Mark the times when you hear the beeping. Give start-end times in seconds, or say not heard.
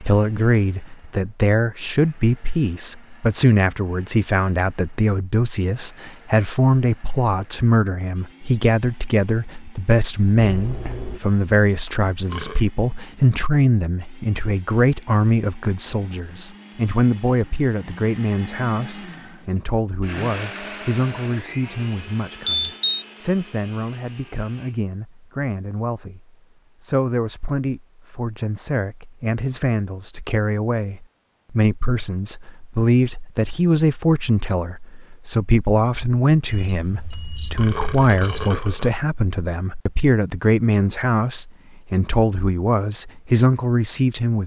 10.3-11.2, 22.4-23.1, 36.5-38.5.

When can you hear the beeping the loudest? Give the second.
23 s.